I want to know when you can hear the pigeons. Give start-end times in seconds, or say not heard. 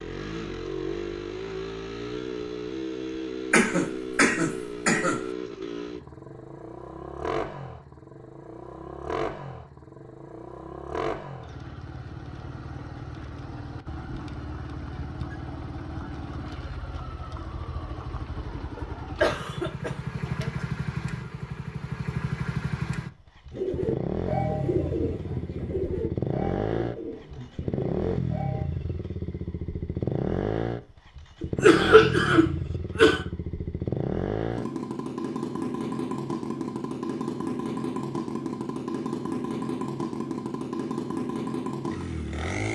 23.5-28.6.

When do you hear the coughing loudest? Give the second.
32 s.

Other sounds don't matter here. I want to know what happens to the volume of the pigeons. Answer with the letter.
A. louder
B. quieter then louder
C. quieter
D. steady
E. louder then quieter
C.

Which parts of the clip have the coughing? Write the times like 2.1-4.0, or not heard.
3.5-5.2, 18.8-20.6, 31.4-33.2.